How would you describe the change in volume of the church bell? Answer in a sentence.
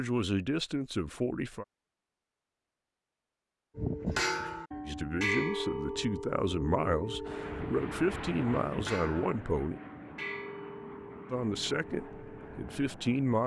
The volume of the church bell goes down.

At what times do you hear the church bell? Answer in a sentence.
The church bell can be heard from 3.8 to 12.8 s.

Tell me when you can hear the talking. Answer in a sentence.
The talking can be heard from 0.0 to 1.6 s, from 4.8 to 9.8 s and from 11.3 to 13.4 s.